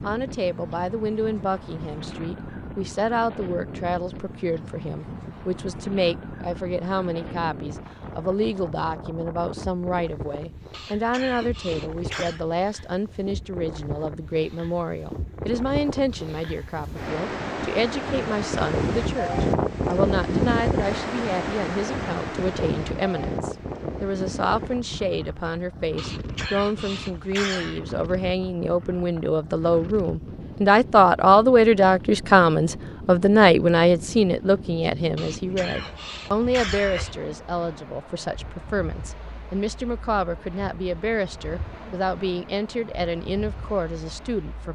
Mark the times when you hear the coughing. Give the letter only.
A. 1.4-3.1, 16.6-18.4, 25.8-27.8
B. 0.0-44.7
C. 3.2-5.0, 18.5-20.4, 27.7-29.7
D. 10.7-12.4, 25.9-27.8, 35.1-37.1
D.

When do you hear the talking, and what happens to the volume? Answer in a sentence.
The talking can be heard from 0.0 to 44.7 s, getting louder then quieter.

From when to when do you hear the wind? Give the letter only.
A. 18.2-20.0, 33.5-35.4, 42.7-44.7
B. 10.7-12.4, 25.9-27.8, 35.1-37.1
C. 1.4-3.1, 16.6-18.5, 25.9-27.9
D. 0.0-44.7
D.